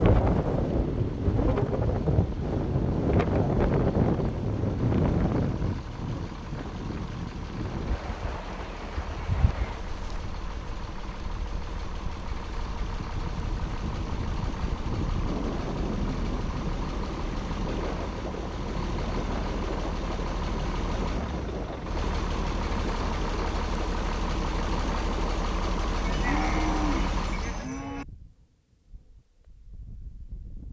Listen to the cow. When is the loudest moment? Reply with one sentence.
The volume of the cow peaks at 26 seconds.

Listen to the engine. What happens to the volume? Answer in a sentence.
The loudness of the engine goes up.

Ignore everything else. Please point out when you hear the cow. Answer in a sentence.
You can hear the cow from 26.0 to 28.1 s.